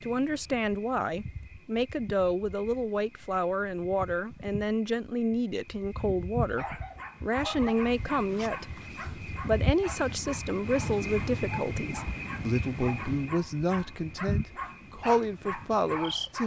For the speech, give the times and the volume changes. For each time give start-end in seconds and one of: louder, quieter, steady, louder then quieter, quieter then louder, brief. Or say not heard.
0.0-16.4 steady.